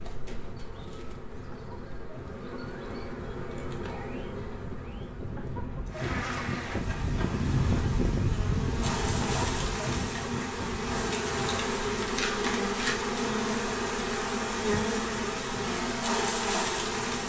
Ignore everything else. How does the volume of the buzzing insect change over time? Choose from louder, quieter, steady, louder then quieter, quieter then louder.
louder.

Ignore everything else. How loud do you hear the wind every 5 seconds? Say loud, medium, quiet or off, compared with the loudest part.
quiet, loud, medium, quiet.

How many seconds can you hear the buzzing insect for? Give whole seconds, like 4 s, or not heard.
17 s.